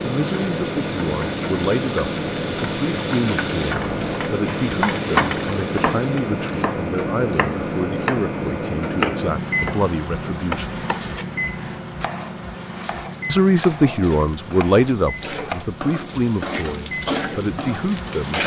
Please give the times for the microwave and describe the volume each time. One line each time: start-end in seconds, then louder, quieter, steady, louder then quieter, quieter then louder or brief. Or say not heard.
0.0-18.4 quieter.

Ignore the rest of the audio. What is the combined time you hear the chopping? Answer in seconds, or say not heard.
12 s.